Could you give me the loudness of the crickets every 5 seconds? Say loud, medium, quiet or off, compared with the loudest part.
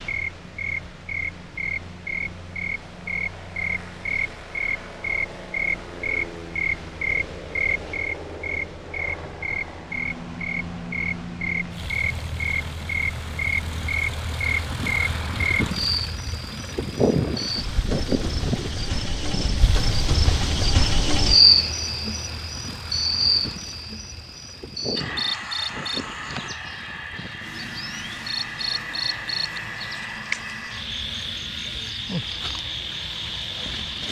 medium, medium, medium, medium, loud, medium, medium.